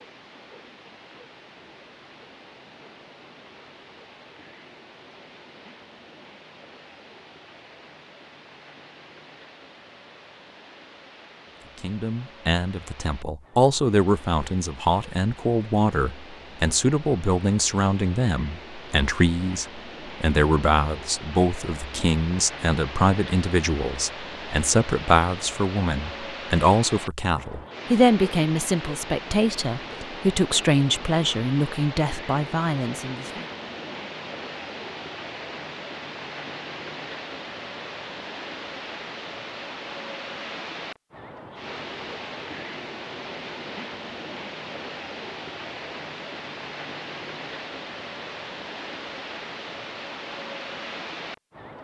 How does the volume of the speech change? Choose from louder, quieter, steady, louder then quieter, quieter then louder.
steady.